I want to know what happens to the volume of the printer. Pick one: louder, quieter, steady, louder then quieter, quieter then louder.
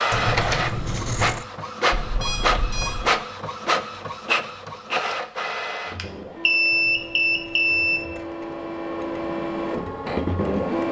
quieter then louder.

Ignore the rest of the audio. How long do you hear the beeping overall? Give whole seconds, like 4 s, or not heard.
3 s.